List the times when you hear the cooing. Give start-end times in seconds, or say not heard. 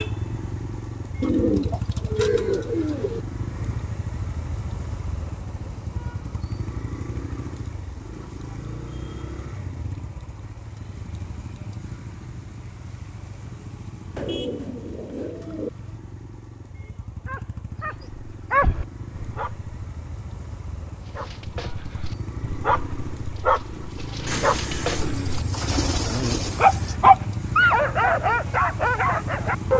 1.2-3.2, 14.2-15.7, 24.2-26.9.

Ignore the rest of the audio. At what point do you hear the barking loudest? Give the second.
27 s.